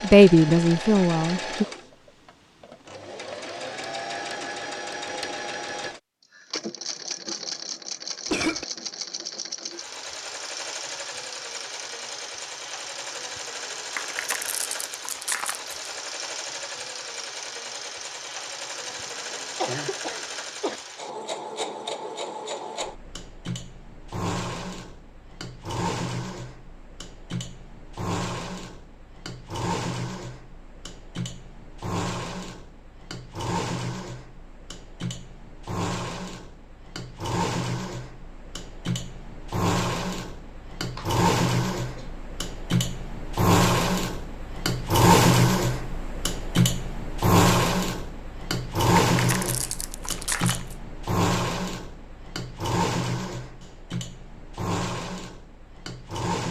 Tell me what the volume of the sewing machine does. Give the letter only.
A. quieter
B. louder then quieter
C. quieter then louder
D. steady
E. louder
E.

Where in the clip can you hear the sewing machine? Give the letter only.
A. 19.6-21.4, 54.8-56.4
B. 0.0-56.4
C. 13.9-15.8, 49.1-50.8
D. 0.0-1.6
B.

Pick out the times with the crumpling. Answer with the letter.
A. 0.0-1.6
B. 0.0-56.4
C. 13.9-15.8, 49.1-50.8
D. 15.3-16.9
C.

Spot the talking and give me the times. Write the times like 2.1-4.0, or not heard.
0.0-1.6.